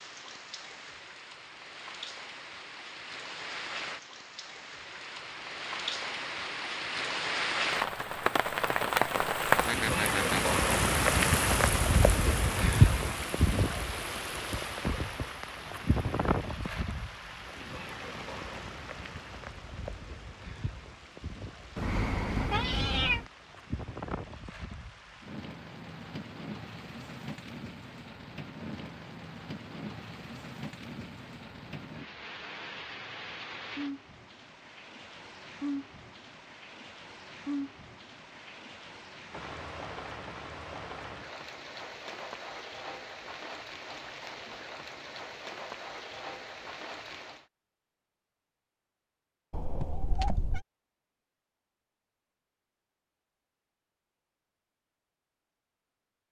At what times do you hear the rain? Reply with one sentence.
The rain can be heard from 0.0 to 47.5 s.